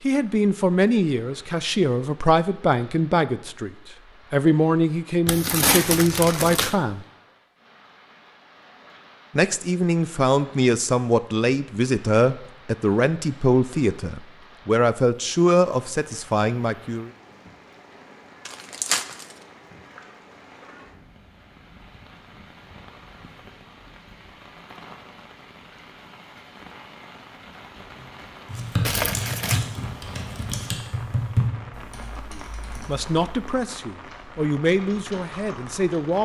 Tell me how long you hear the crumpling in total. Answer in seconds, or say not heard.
3 s.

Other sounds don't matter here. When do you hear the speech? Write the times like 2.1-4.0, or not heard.
0.1-3.7, 4.3-7.0, 9.3-17.1, 32.3-36.2.